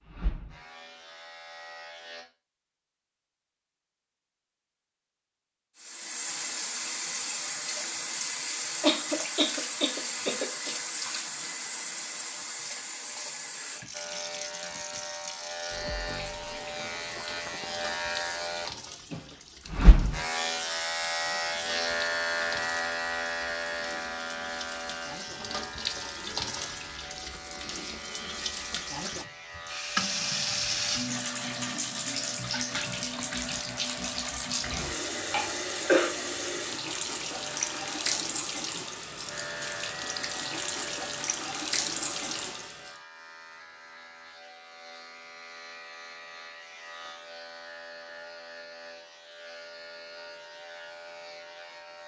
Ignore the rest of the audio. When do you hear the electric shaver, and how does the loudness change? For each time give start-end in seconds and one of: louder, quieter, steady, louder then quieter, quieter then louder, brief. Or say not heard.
0.0-2.2 brief
13.9-52.0 quieter.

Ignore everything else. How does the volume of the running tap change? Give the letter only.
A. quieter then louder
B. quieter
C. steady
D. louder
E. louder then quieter
A.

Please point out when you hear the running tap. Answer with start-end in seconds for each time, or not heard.
5.8-43.0.